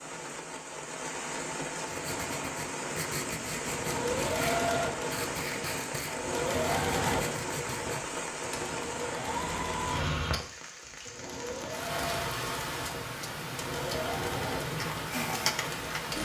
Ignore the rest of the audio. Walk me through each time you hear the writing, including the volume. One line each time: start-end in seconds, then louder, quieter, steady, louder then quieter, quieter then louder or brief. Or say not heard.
1.9-8.2 steady.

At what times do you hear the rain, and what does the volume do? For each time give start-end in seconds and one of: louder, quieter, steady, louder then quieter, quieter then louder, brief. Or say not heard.
0.0-16.2 steady.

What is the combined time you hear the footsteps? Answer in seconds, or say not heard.
not heard.